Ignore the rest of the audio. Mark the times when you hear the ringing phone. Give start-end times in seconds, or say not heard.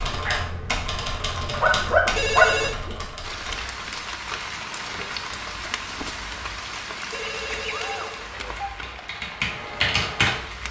2.1-2.8, 7.1-8.7.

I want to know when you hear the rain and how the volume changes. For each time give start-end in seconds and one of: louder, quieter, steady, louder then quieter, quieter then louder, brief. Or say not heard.
3.2-10.6 quieter.